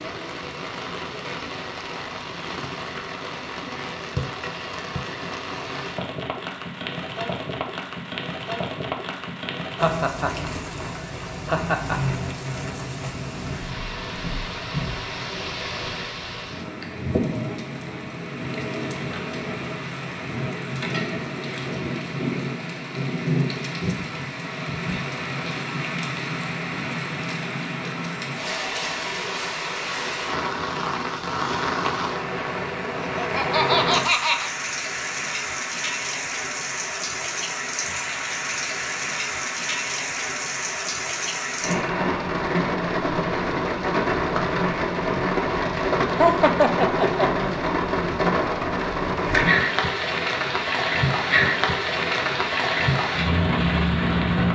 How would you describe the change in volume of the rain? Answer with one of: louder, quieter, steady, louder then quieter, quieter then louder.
louder.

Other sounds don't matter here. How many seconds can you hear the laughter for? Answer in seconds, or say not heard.
5 s.